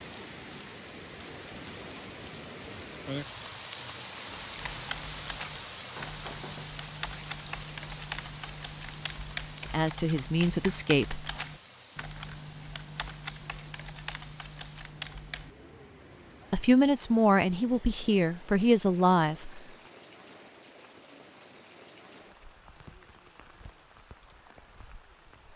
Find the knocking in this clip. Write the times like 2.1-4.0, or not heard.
5.8-6.7.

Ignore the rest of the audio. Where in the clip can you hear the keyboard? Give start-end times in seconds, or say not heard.
4.5-15.6.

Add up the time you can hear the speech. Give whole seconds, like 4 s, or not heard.
5 s.